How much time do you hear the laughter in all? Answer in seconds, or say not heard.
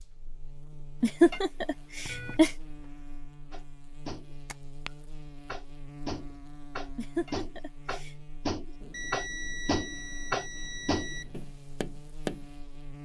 3 s.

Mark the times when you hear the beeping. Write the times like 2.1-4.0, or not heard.
2.0-2.9, 8.8-11.4.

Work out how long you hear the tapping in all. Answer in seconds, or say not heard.
9 s.